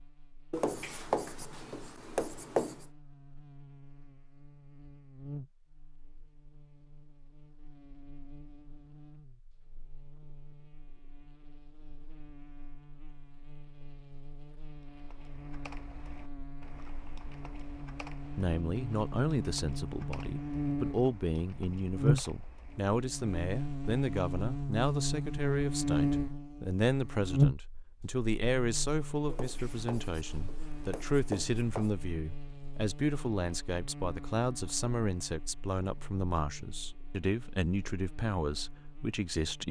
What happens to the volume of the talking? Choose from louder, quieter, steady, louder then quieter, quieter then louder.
steady.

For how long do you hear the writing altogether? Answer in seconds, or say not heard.
5 s.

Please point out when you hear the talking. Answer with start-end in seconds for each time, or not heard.
18.4-39.6.